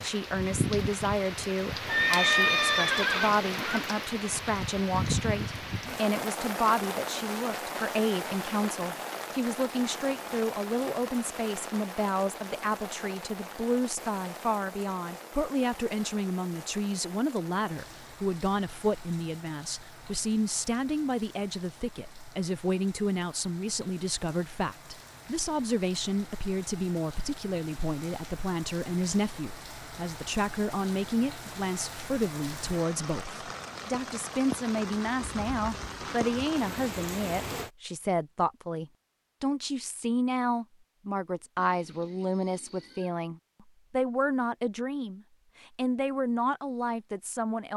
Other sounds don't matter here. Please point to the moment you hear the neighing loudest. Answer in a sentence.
The loudest moment of the neighing is at 2 seconds.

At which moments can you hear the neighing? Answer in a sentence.
The neighing can be heard from 1.9 to 3.8 s and from 41.5 to 43.1 s.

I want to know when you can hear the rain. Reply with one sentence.
The rain can be heard from 0.0 to 37.7 s.